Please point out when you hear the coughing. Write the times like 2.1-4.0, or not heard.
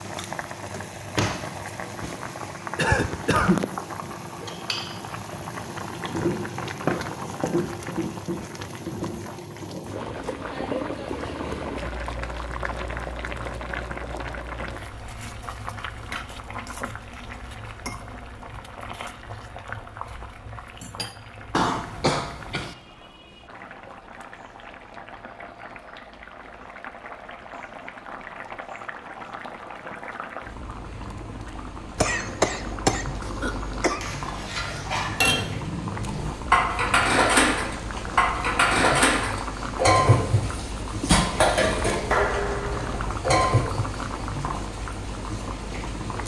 2.8-3.6, 21.5-22.8, 31.9-34.0.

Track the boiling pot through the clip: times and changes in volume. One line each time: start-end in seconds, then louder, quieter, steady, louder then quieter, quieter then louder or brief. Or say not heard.
0.0-46.2 quieter then louder.